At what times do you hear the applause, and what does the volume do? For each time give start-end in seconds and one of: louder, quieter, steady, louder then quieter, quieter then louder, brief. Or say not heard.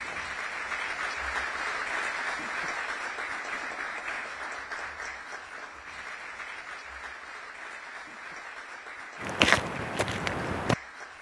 0.0-11.1 quieter.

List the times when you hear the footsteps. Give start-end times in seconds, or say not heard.
9.2-10.8.